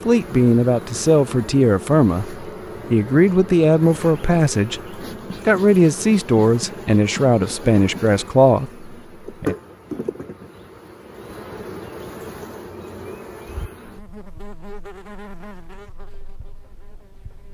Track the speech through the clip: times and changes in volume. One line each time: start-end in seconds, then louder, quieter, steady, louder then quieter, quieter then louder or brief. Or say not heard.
0.1-9.6 steady.